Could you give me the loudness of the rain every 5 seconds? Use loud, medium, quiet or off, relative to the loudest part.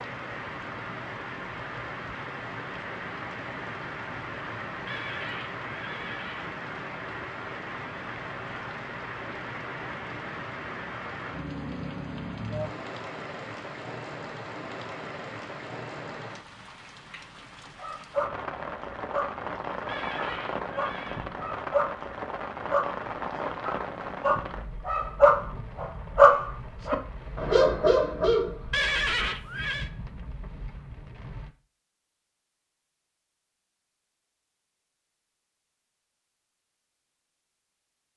loud, loud, loud, loud, loud, medium, medium, off.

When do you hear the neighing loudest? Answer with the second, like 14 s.
29 s.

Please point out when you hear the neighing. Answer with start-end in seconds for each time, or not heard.
4.8-6.5, 19.9-21.3, 28.7-29.9.